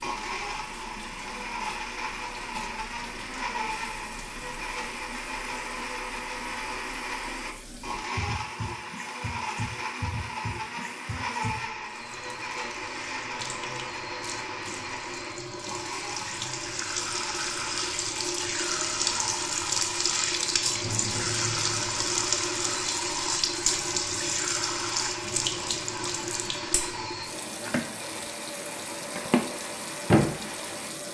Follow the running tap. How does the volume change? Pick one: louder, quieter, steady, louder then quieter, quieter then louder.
louder.